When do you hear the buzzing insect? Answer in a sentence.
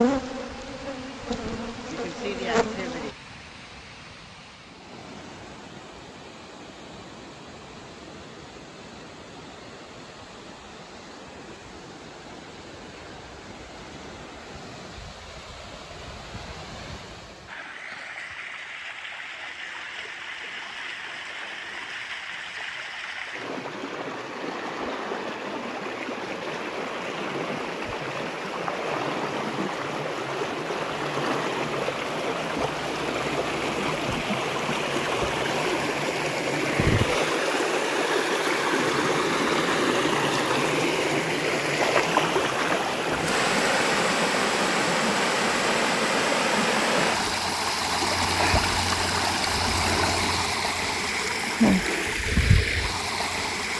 You can hear the buzzing insect from 0.0 to 3.1 s.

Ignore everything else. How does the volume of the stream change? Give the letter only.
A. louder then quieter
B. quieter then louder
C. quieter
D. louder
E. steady
D.